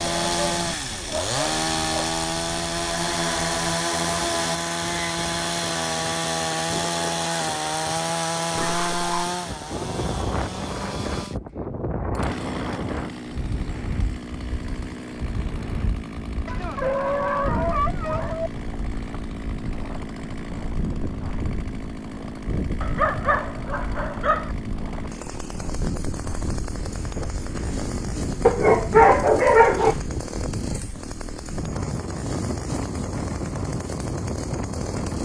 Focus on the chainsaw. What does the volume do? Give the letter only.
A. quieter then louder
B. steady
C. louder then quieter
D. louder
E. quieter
E.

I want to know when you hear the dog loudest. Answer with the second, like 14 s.
29 s.